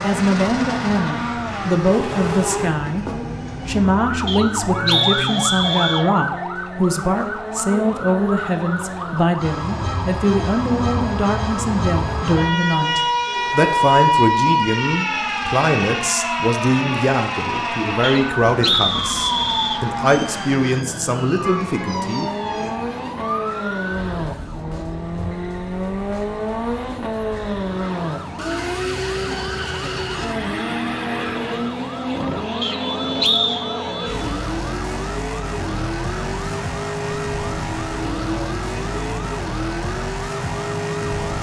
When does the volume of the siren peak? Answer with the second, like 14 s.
14 s.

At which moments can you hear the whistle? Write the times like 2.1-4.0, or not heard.
4.2-6.0, 18.0-19.9, 32.6-33.6.